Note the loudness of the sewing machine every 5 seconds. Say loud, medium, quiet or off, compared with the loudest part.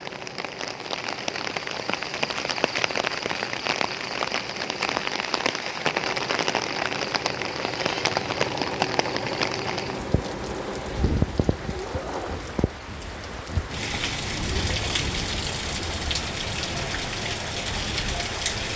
medium, loud, loud, medium.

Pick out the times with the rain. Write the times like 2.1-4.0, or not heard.
0.0-18.7.